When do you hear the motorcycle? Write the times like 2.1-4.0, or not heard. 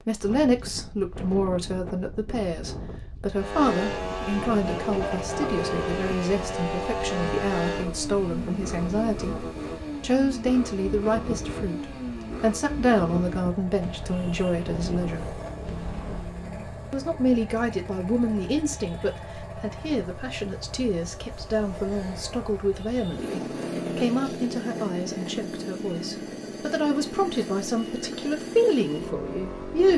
3.3-29.9.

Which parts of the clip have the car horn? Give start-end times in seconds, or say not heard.
4.9-6.2.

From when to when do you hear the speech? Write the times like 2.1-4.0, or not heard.
0.1-9.3, 10.0-15.2, 16.9-29.9.